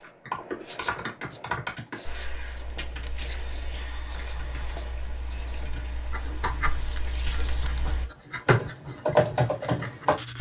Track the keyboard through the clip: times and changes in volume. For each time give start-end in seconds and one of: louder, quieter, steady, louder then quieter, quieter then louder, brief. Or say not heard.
0.0-10.3 quieter then louder.